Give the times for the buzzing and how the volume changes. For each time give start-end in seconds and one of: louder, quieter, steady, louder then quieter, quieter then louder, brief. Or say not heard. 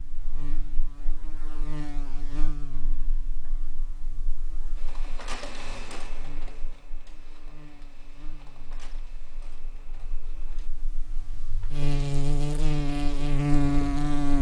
0.0-14.3 quieter then louder.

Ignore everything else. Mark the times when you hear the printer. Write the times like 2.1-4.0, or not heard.
4.8-10.7.